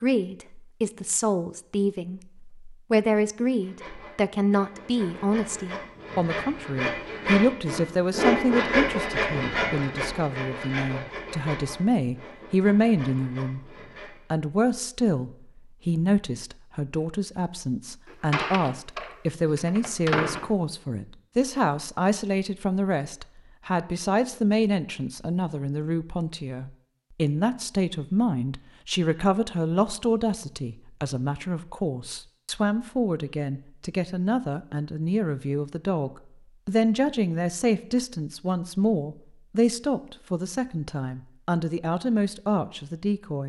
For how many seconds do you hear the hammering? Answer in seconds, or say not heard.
not heard.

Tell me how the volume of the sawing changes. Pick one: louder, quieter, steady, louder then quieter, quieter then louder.
louder then quieter.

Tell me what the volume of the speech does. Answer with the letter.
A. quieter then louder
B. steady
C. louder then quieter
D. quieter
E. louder
B.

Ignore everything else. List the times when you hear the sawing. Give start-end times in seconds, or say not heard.
3.5-14.2.